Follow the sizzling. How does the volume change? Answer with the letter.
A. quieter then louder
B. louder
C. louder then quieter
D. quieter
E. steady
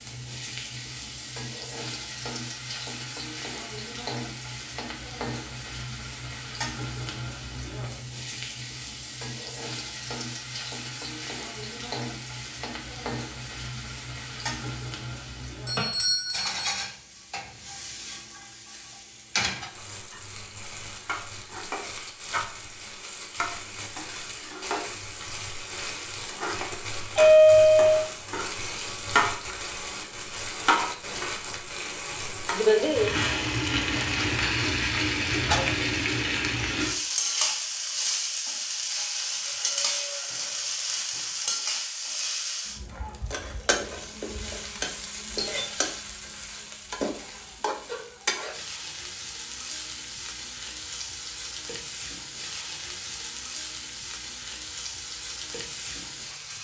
C.